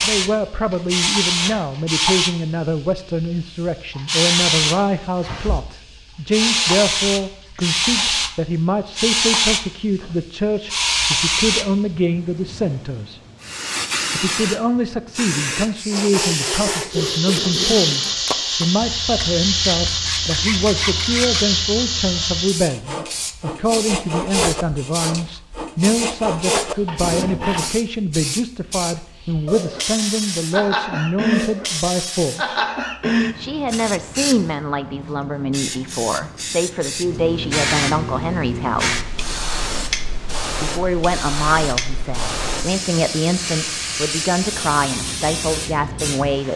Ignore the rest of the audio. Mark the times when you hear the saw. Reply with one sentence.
You can hear the saw from 15.9 to 27.8 s.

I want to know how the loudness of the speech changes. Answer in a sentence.
The volume of the speech stays about the same.